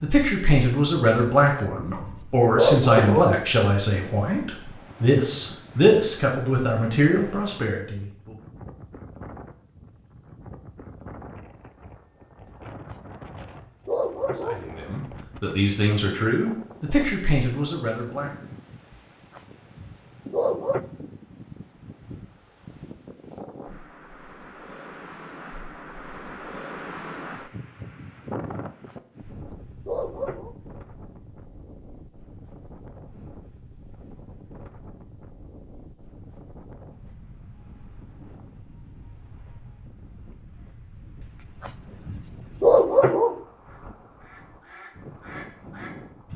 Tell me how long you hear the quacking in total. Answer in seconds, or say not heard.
3 s.